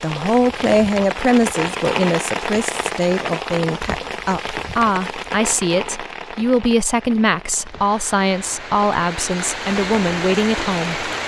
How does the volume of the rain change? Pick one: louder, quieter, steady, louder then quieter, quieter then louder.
quieter then louder.